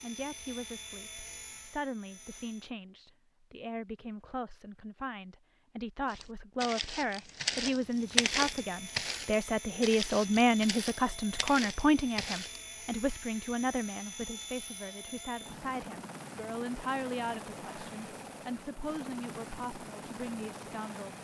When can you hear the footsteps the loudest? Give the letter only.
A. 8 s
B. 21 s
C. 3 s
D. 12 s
A.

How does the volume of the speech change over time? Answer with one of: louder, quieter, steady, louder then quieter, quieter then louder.
louder then quieter.